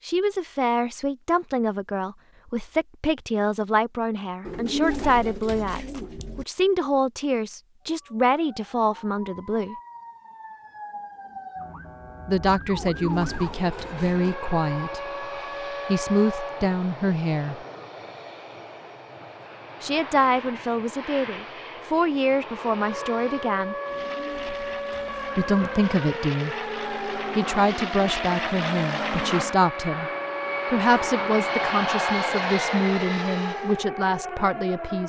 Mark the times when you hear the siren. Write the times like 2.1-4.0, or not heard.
7.8-16.8, 22.8-35.0.